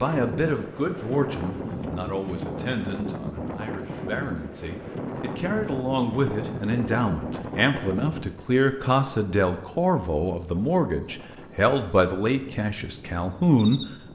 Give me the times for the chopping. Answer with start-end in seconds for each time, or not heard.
not heard.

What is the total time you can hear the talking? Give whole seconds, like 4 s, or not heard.
14 s.